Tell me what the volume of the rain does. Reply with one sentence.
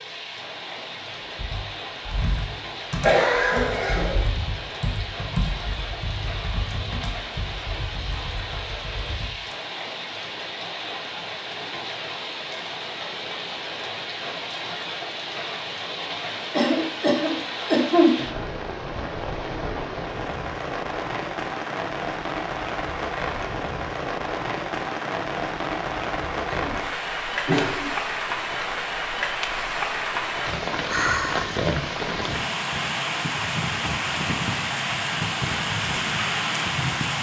The volume of the rain goes up.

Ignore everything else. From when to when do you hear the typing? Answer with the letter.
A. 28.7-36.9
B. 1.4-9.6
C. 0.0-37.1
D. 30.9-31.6
B.